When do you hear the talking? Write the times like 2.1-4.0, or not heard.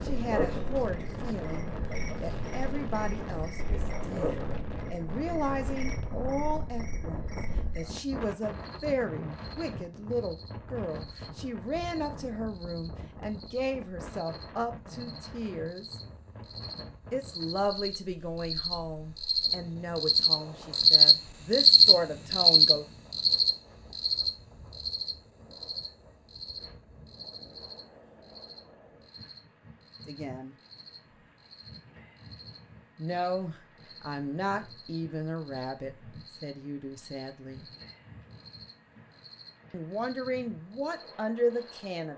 0.0-15.9, 17.1-22.9, 30.1-30.6, 33.0-37.6, 39.7-42.1.